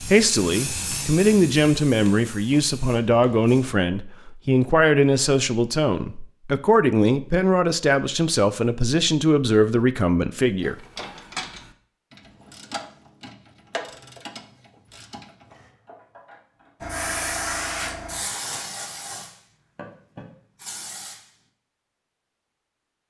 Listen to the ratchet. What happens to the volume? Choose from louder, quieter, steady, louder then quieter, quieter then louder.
quieter.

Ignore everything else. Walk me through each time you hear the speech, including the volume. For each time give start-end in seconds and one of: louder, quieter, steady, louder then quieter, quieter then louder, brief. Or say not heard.
0.0-10.8 steady.